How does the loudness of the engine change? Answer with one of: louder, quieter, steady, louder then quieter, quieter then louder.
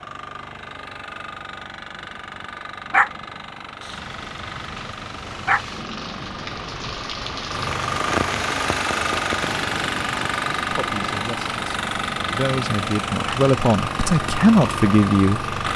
louder.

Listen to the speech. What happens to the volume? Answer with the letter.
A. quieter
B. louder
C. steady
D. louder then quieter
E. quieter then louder
B.